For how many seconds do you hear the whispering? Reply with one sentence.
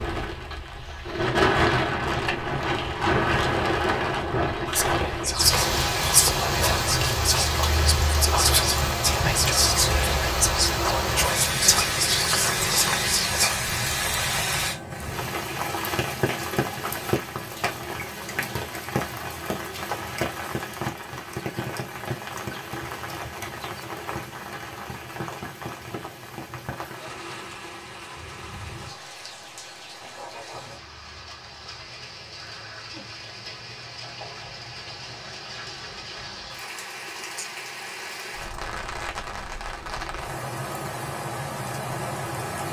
The whispering can be heard for 9 seconds in total.